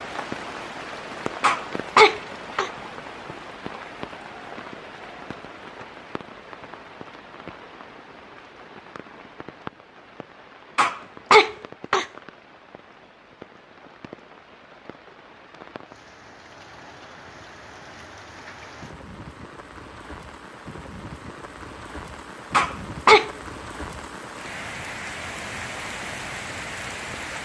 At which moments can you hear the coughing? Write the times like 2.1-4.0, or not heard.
1.4-2.7, 10.8-12.1, 22.5-23.3.